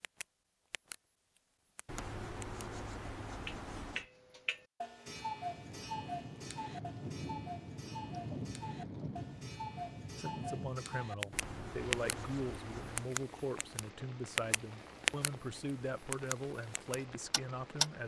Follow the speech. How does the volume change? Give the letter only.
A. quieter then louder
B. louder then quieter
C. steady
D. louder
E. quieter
C.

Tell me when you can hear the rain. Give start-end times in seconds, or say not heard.
5.0-18.0.